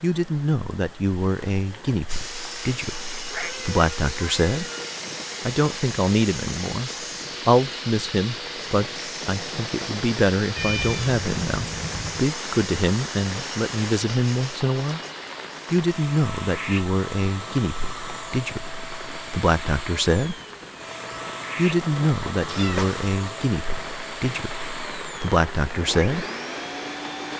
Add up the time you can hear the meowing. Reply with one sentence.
You can hear the meowing for 4 seconds altogether.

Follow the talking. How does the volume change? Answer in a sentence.
The volume of the talking stays about the same.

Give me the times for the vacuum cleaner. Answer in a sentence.
The vacuum cleaner can be heard from 2.0 to 27.3 s.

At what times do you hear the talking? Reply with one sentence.
You can hear the talking from 0.0 to 4.7 s, from 5.5 to 15.0 s, from 15.7 to 20.4 s and from 21.6 to 26.2 s.